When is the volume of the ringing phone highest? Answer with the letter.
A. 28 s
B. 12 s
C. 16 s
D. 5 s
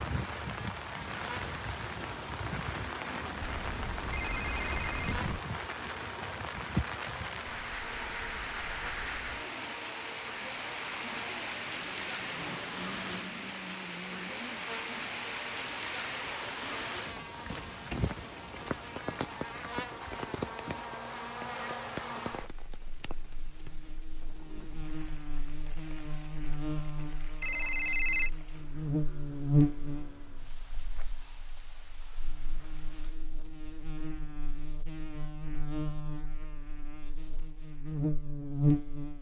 A.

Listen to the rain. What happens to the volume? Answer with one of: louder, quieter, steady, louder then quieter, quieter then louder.
quieter.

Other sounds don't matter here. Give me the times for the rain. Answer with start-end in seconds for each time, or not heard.
0.0-33.1.